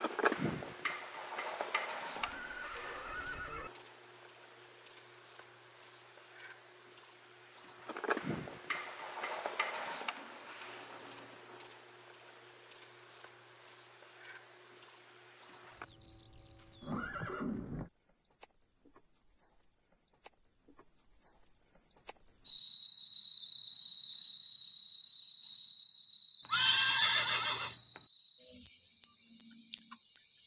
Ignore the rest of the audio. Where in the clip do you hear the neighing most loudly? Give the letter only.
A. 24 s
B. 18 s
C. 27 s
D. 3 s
C.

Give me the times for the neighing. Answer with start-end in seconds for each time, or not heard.
2.1-3.7, 16.8-17.9, 26.5-28.0.